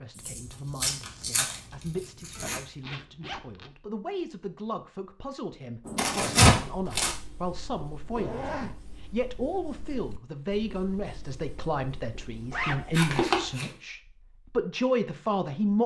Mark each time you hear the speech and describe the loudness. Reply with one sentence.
The speech can be heard from 0.0 to 15.8 s, getting louder.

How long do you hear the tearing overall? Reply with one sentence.
You can hear the tearing for 4 seconds altogether.